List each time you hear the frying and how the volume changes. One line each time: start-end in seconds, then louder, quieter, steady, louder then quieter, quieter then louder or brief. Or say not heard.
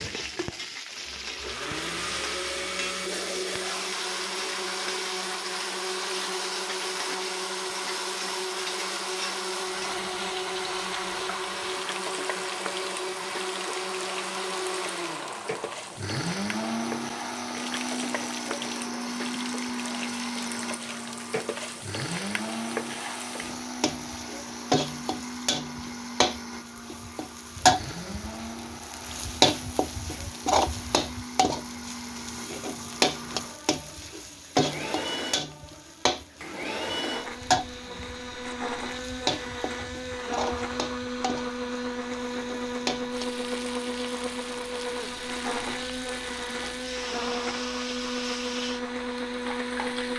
0.0-50.1 louder then quieter.